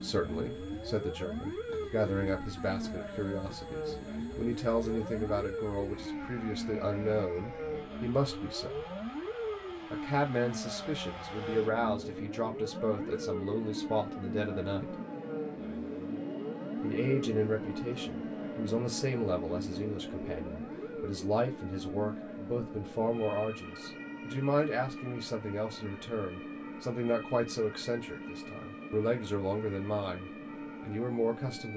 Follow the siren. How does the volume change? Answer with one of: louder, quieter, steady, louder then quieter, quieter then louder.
quieter.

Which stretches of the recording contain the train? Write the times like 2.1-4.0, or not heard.
0.0-31.7.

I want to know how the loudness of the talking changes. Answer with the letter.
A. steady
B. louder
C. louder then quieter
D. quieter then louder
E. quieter
A.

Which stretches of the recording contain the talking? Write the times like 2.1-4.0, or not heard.
0.0-8.8, 9.9-14.9, 16.8-31.7.